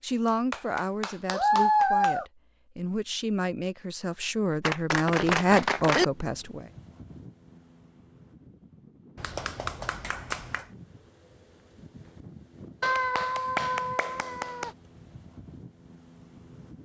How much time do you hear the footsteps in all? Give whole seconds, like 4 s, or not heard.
not heard.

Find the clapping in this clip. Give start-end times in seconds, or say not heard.
0.5-2.2, 4.6-6.0, 9.2-10.7, 12.8-14.7.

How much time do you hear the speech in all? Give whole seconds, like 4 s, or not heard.
7 s.